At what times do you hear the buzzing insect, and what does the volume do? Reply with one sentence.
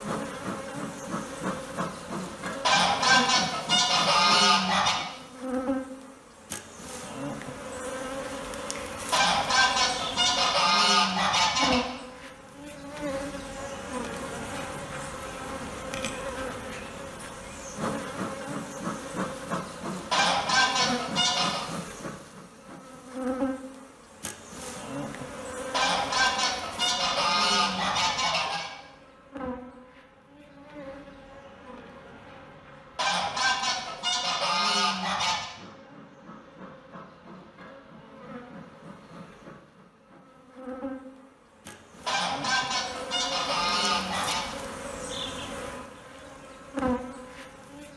The buzzing insect can be heard from 0.0 to 47.9 s, getting quieter then louder.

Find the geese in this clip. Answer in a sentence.
You can hear the geese from 2.6 to 5.0 s, from 9.1 to 11.8 s, from 20.1 to 21.6 s, from 25.7 to 28.7 s, from 33.0 to 35.5 s and from 42.0 to 44.5 s.